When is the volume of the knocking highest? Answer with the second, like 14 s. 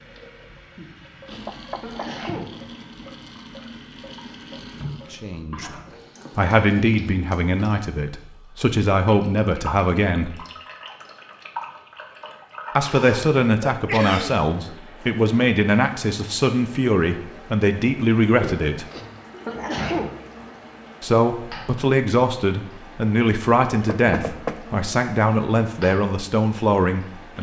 24 s.